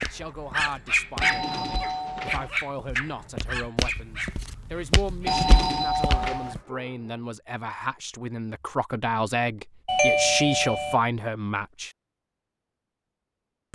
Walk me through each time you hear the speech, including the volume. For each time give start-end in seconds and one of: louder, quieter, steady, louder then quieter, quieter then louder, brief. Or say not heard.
0.0-11.9 louder.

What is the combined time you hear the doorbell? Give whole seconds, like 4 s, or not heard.
4 s.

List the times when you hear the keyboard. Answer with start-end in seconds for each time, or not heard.
not heard.